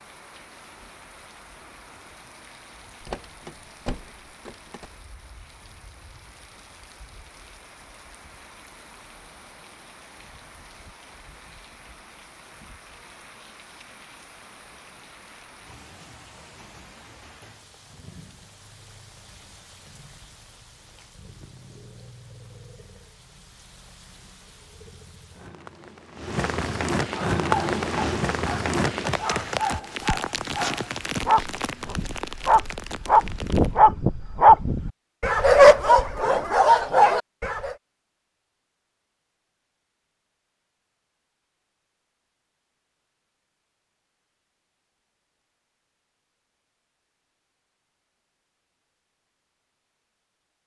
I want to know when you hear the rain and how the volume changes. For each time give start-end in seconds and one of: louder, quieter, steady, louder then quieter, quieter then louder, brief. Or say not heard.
0.0-33.8 louder.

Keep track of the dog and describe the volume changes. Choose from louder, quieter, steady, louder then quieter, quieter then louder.
louder.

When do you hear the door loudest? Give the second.
3 s.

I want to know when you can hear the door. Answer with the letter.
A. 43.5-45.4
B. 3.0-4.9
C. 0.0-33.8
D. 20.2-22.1
B.